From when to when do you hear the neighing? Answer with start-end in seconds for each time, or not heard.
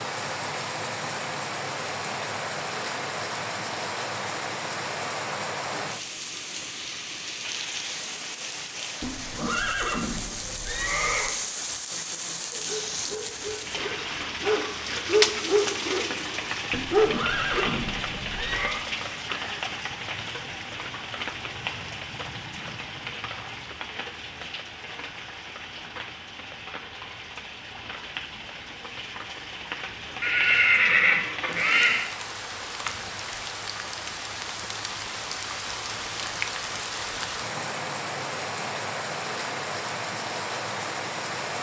9.0-11.3, 16.7-18.9, 30.2-32.0.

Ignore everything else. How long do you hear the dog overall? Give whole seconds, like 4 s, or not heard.
5 s.